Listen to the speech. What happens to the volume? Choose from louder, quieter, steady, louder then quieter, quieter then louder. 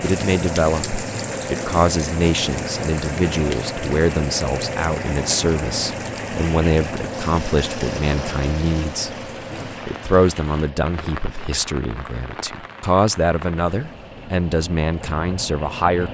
steady.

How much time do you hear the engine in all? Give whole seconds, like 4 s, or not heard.
16 s.